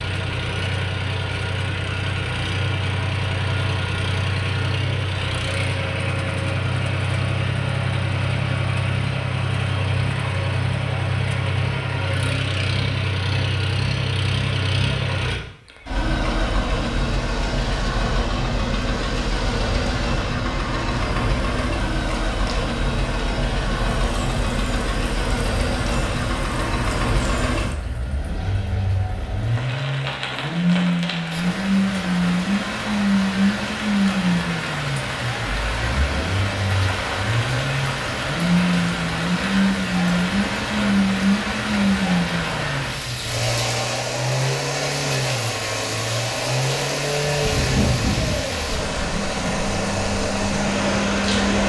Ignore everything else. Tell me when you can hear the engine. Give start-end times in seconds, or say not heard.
0.0-51.6.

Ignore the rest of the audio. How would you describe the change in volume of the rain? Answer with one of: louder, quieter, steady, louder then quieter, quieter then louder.
louder.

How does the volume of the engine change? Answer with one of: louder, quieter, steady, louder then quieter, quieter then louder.
steady.